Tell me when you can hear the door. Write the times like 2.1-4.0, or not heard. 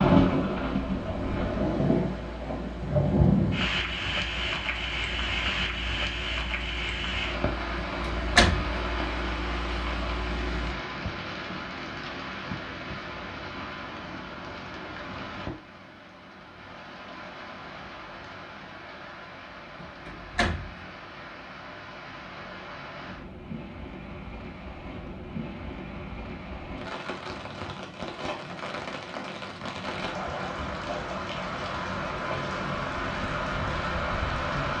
7.8-8.8, 19.8-20.8.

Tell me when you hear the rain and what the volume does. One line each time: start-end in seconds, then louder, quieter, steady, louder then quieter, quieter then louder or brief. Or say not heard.
0.0-34.7 quieter then louder.